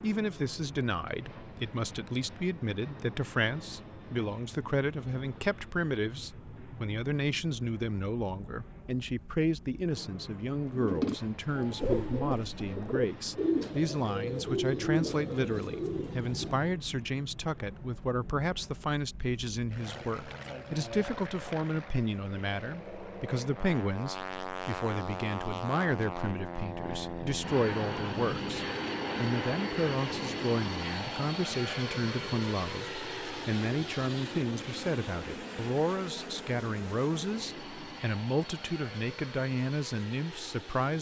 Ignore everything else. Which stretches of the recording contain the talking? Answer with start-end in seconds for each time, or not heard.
0.0-40.9.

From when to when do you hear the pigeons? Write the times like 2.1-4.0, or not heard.
10.7-16.8.